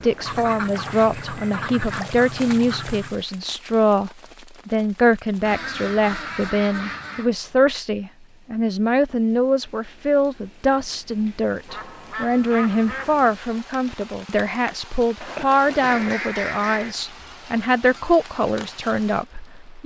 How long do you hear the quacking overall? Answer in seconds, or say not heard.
8 s.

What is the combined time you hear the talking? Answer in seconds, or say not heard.
20 s.